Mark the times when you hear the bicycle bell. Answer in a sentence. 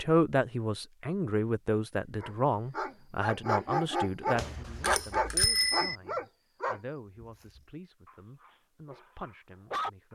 You can hear the bicycle bell from 4.3 to 6.0 s.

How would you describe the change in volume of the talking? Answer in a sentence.
The loudness of the talking goes down.